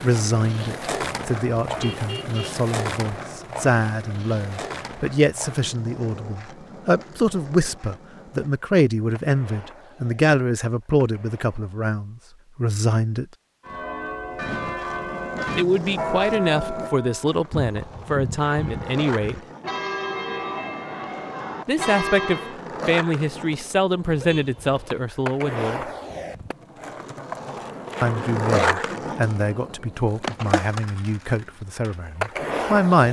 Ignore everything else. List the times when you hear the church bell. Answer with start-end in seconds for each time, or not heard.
13.6-22.6.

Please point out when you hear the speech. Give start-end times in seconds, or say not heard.
0.0-13.2, 15.6-19.4, 21.6-25.9, 28.0-33.0.